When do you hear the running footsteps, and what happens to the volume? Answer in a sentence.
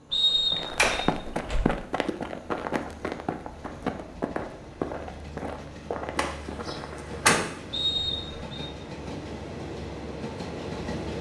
The running footsteps can be heard from 0.5 to 7.1 s, getting quieter.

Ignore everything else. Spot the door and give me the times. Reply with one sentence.
The door can be heard from 0.8 to 1.8 s and from 6.2 to 7.5 s.